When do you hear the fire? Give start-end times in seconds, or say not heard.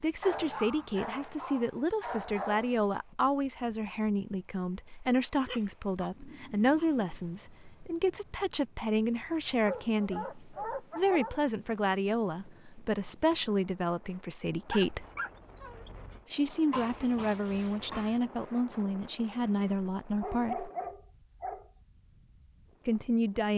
not heard.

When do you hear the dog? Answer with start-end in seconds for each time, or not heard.
0.2-2.9, 5.5-7.2, 9.5-11.4, 14.7-16.2, 20.2-21.7.